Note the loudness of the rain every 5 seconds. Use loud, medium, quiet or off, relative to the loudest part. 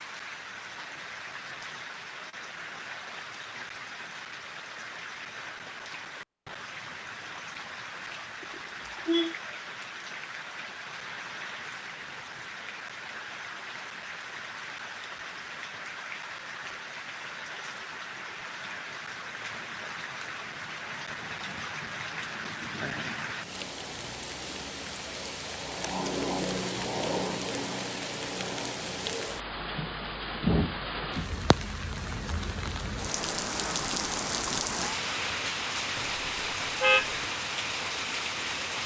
medium, medium, medium, medium, medium, loud, loud, loud.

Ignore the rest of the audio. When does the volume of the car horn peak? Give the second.
37 s.